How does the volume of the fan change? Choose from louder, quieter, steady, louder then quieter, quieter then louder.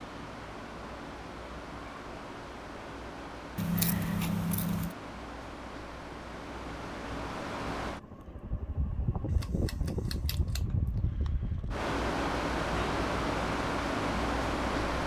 louder.